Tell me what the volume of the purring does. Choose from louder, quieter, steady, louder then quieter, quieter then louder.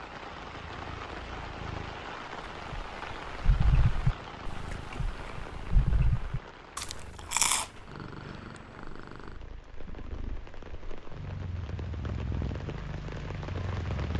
louder.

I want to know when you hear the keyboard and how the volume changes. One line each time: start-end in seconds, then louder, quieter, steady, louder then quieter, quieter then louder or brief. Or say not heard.
not heard.